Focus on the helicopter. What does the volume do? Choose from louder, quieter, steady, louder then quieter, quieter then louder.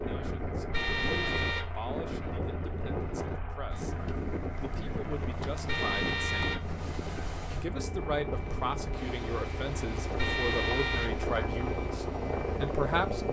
louder.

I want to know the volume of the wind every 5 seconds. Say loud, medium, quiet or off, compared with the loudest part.
loud, loud, medium.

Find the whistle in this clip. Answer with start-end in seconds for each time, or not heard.
not heard.